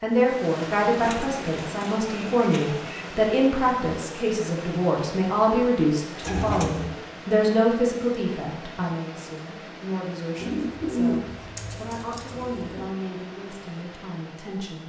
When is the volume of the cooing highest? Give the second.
11 s.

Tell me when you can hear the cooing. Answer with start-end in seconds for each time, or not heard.
1.0-3.0, 6.2-7.0, 10.4-12.9.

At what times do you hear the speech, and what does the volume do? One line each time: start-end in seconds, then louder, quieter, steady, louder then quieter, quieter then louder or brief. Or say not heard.
0.0-14.8 quieter.